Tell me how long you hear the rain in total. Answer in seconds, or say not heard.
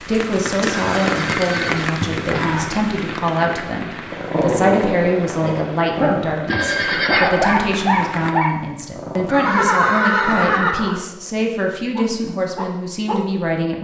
8 s.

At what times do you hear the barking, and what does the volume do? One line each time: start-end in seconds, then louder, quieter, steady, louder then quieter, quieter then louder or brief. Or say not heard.
4.0-13.2 quieter.